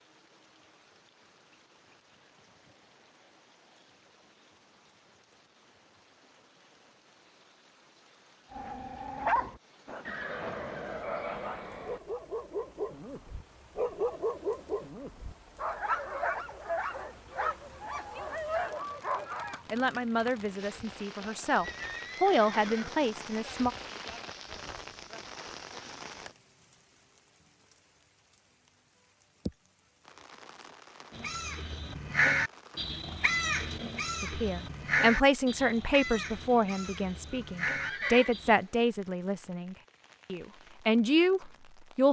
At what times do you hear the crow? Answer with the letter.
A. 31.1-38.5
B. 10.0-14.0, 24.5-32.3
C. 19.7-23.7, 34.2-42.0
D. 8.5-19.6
A.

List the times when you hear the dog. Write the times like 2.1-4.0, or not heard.
8.5-19.6.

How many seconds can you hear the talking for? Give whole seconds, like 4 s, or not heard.
12 s.